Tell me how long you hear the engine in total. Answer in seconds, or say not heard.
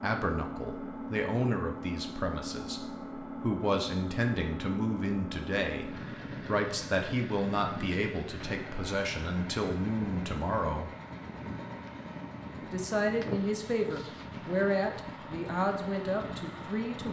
17 s.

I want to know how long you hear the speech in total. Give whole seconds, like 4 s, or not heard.
15 s.